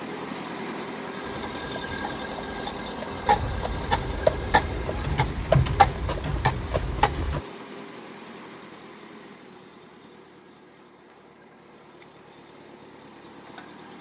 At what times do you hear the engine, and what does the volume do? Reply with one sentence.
The engine can be heard from 0.0 to 13.9 s, getting quieter.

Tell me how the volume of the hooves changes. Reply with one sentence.
The loudness of the hooves goes up, then down.